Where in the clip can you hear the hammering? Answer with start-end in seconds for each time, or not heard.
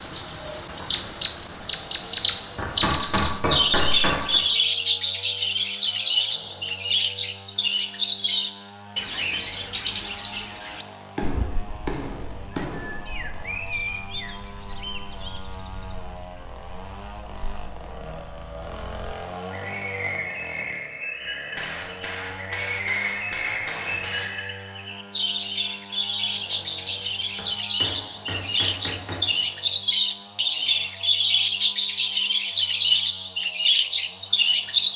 2.5-4.4, 11.2-12.9, 21.6-24.4, 26.8-29.2.